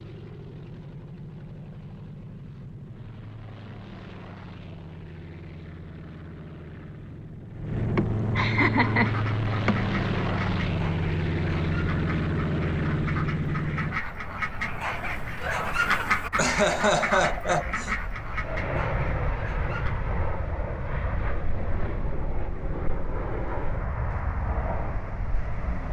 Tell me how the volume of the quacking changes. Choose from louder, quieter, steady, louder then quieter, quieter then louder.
louder then quieter.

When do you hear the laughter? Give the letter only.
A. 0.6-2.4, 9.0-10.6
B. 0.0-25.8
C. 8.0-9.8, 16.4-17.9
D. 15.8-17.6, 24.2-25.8
C.